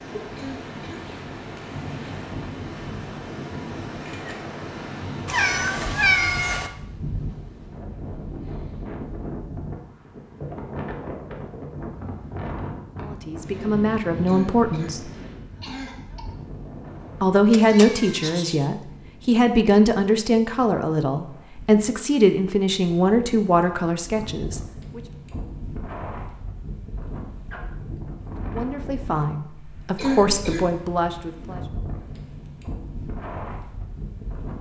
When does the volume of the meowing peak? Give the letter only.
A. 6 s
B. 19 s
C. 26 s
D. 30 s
A.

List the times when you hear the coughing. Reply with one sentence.
The coughing can be heard from 0.3 to 1.1 s, from 14.2 to 16.2 s and from 29.9 to 30.7 s.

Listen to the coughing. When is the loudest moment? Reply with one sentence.
The loudest moment of the coughing is at 30 seconds.